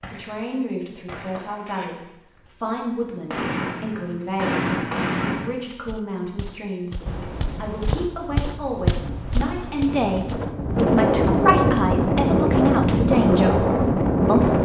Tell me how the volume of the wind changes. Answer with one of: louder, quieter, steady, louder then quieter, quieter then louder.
louder.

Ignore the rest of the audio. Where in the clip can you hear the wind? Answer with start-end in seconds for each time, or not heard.
7.0-14.6.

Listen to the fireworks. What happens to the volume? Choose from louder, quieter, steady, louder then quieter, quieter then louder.
quieter then louder.